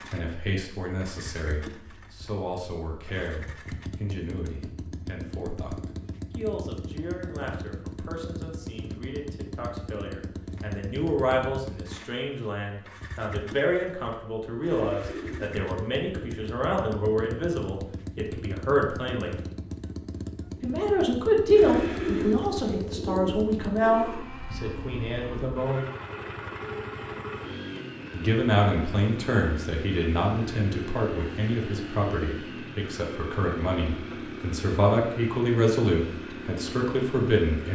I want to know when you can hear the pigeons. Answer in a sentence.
The pigeons can be heard from 14.6 to 16.5 s and from 21.5 to 24.2 s.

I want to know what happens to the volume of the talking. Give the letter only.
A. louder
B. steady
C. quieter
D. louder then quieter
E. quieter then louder
A.